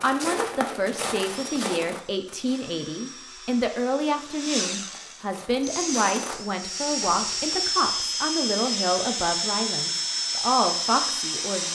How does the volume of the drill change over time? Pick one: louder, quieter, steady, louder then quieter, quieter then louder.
louder.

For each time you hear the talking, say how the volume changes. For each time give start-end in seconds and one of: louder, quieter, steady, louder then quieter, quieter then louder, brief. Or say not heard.
0.0-11.7 steady.